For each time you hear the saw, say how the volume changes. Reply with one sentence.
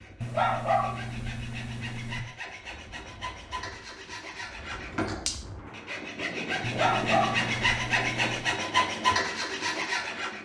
You can hear the saw from 0.0 to 10.4 s, getting louder.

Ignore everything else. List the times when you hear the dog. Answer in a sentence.
You can hear the dog from 0.2 to 2.2 s and from 6.6 to 8.6 s.